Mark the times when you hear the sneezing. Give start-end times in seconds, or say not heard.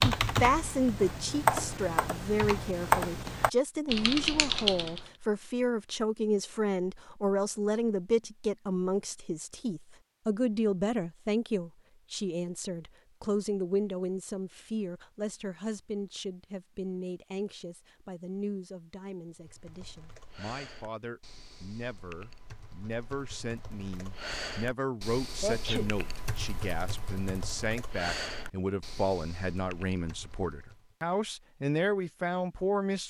25.4-25.9.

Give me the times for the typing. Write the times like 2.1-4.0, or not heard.
0.0-5.1, 19.3-30.9.